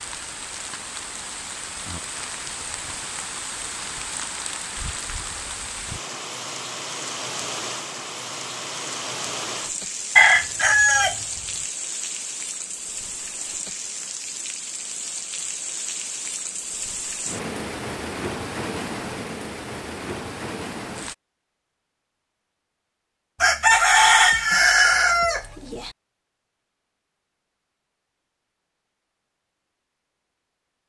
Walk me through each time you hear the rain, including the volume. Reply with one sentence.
You can hear the rain from 0.0 to 21.1 s, at a steady volume.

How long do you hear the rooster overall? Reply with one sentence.
You can hear the rooster for 4 seconds altogether.